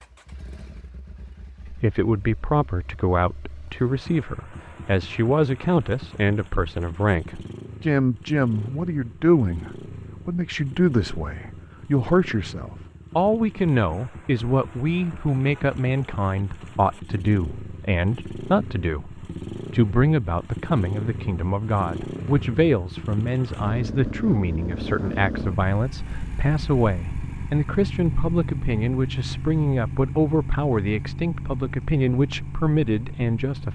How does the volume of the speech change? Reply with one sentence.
The loudness of the speech stays about the same.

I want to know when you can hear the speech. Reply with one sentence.
The speech can be heard from 1.6 to 33.7 s.